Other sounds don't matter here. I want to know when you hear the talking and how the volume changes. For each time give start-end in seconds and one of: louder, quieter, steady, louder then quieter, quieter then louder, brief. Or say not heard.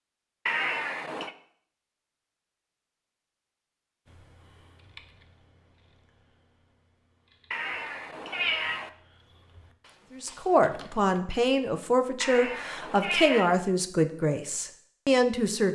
10.1-15.6 steady.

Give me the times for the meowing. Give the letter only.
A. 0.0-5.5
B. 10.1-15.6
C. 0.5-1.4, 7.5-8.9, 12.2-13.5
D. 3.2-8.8
C.